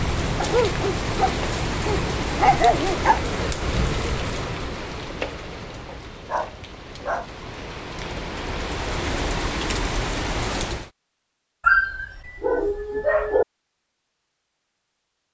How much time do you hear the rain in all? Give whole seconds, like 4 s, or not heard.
11 s.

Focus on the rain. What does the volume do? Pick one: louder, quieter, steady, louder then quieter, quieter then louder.
quieter then louder.